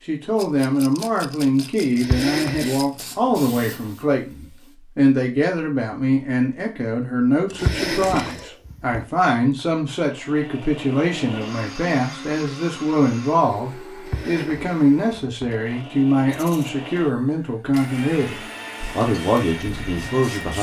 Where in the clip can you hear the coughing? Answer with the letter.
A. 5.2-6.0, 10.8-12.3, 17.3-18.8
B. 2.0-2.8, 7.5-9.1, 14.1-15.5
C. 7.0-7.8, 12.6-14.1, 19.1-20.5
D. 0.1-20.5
B.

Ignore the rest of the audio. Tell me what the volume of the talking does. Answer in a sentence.
The volume of the talking stays about the same.